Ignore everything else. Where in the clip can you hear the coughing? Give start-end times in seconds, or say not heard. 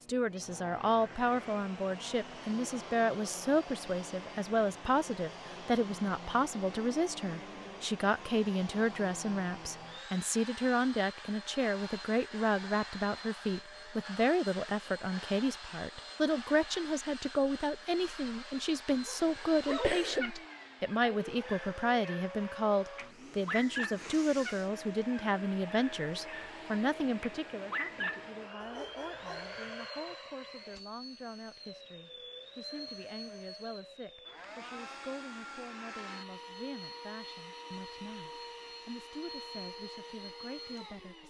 19.2-20.2.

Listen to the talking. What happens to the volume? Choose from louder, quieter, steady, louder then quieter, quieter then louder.
quieter.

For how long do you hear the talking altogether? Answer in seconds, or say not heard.
41 s.